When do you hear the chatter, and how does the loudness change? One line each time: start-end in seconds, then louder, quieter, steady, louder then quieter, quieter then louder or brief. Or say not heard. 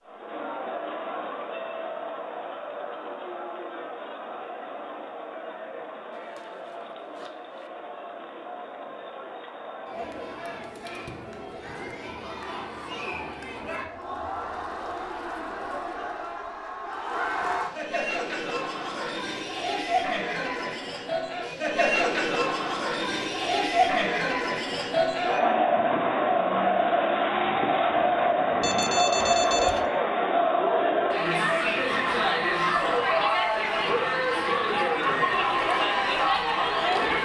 0.0-37.1 louder.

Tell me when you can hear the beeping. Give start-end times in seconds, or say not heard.
28.6-29.8.